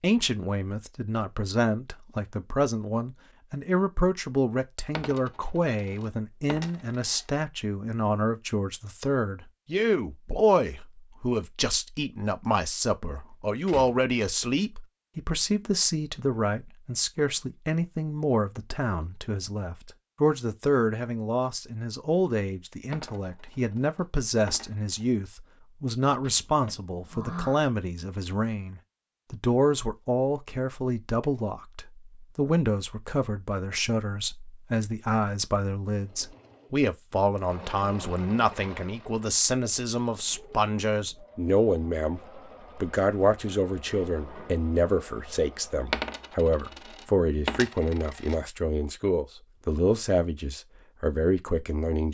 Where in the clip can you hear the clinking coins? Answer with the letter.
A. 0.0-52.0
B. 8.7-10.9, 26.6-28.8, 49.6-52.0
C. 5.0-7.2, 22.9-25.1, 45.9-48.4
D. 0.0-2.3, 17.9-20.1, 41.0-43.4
C.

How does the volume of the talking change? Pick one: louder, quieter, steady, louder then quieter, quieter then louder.
steady.